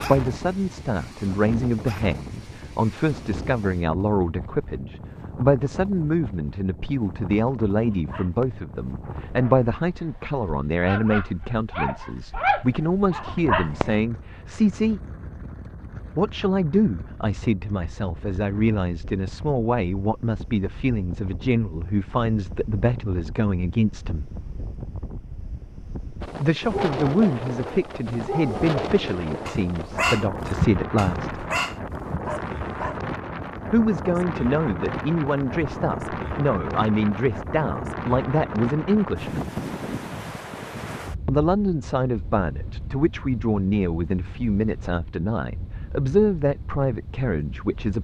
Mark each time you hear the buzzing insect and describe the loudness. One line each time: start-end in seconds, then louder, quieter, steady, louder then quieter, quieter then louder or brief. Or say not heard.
not heard.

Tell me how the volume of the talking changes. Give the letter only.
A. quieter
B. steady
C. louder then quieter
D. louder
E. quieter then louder
B.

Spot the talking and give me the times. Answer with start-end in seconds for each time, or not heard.
0.0-15.0, 16.1-24.2, 26.4-31.3, 33.7-39.5, 41.2-47.9.